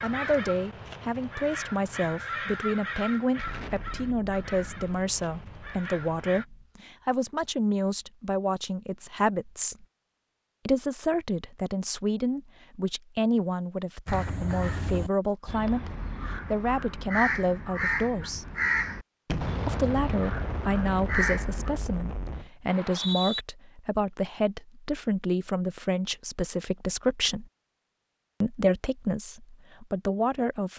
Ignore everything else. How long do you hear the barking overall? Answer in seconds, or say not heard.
not heard.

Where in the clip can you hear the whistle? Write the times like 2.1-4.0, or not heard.
22.6-23.4.